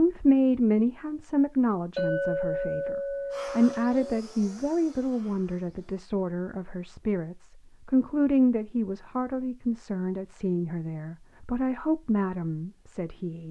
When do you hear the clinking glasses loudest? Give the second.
2 s.